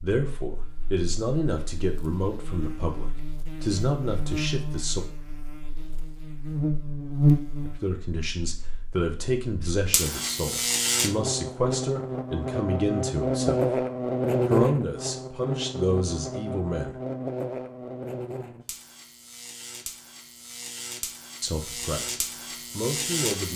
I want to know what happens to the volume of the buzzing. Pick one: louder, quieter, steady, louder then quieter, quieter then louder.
louder then quieter.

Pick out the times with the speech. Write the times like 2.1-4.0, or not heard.
0.0-5.0, 7.7-13.7, 14.4-16.9, 21.4-23.5.